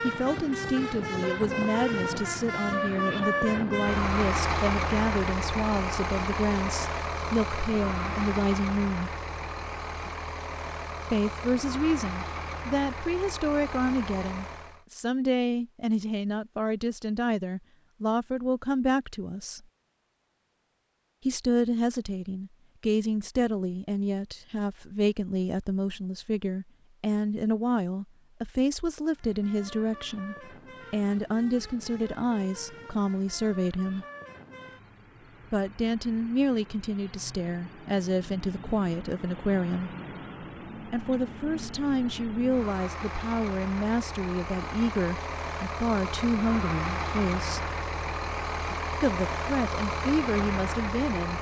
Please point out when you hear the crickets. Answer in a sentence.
You can't hear the crickets here.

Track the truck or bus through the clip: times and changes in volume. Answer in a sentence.
The truck or bus can be heard from 0.0 to 14.8 s, getting quieter; and from 29.1 to 51.3 s, getting louder.